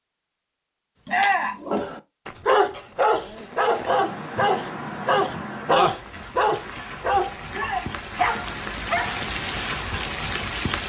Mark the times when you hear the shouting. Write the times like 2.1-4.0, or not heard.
1.1-1.6, 7.5-7.9.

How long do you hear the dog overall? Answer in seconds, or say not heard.
8 s.